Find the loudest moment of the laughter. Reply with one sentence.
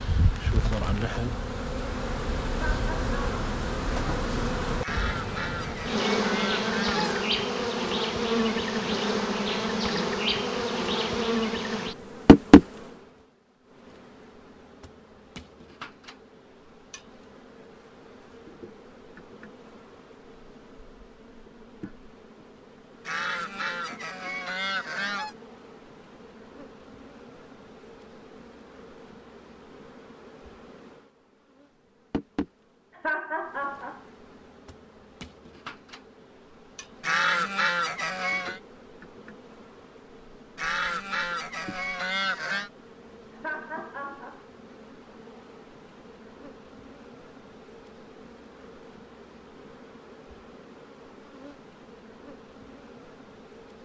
The volume of the laughter peaks at 33 seconds.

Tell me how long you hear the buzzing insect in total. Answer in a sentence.
The buzzing insect can be heard for 54 seconds in total.